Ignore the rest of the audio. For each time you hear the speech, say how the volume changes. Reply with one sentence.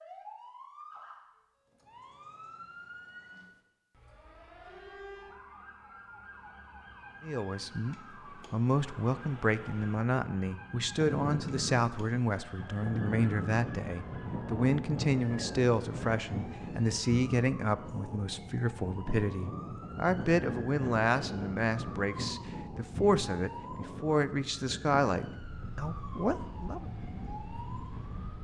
You can hear the speech from 7.2 to 26.9 s, at a steady volume.